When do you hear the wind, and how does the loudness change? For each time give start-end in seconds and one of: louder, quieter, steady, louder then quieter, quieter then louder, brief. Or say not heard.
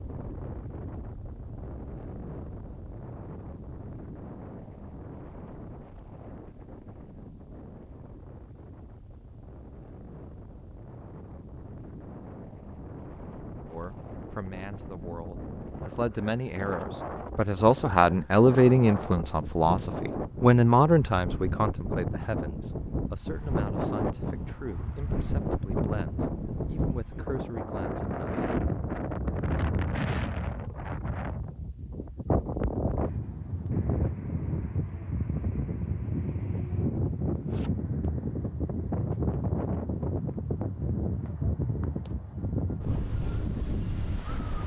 0.0-44.6 louder.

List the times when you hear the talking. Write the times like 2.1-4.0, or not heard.
13.7-28.6.